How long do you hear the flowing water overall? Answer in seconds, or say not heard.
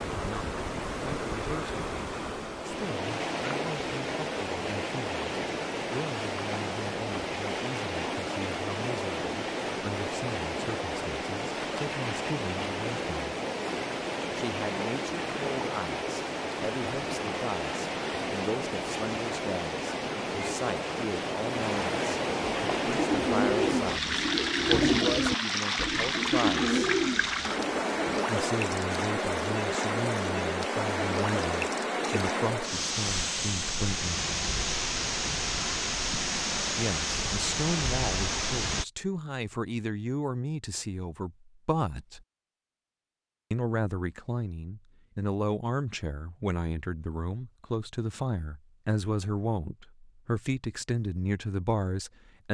39 s.